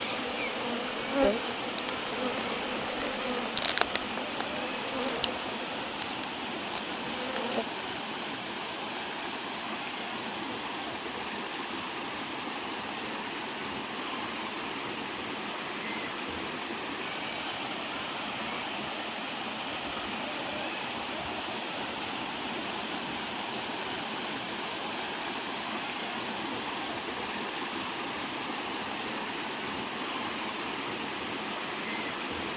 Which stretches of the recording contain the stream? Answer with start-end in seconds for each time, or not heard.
0.0-32.5.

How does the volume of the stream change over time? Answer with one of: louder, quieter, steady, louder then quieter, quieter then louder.
steady.